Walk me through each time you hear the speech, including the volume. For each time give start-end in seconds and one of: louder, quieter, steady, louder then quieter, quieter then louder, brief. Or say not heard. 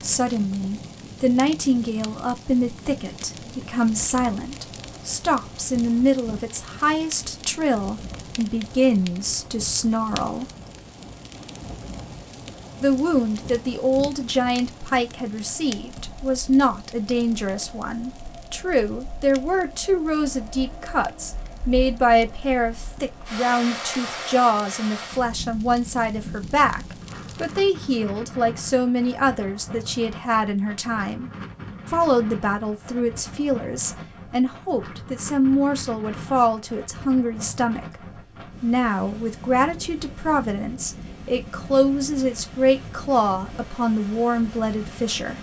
0.0-10.5 steady
12.8-45.3 steady.